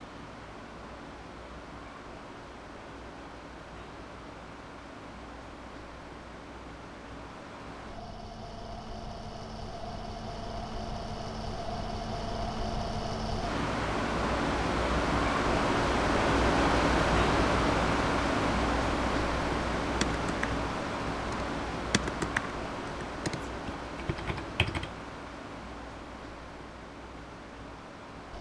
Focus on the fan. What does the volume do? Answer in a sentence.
The volume of the fan goes up, then down.